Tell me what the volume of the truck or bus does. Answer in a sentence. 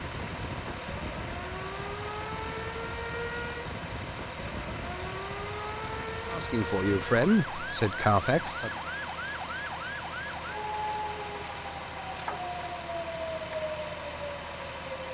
The loudness of the truck or bus stays about the same.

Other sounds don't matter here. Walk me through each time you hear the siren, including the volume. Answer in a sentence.
You can hear the siren from 0.0 to 15.0 s, at a steady volume.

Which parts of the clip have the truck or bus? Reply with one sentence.
You can hear the truck or bus from 0.0 to 15.0 s.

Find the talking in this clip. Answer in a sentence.
The talking can be heard from 6.3 to 8.7 s.